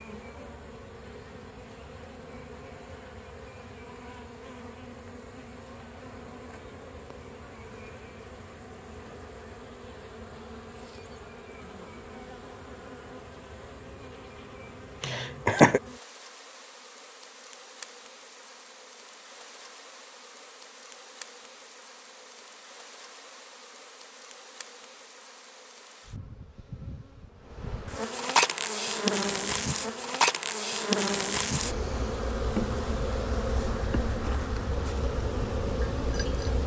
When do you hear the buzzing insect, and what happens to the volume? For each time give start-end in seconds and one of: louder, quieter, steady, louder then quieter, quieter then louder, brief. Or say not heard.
0.0-36.6 louder.